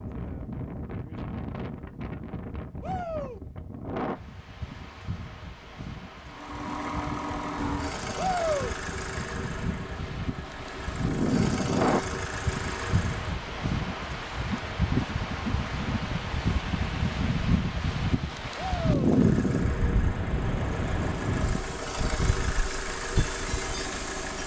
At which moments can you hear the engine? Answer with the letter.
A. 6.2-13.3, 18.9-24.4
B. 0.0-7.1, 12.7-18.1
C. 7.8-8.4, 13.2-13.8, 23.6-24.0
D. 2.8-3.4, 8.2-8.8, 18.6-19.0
A.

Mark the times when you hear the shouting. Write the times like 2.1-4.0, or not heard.
2.8-3.4, 8.2-8.8, 18.6-19.0.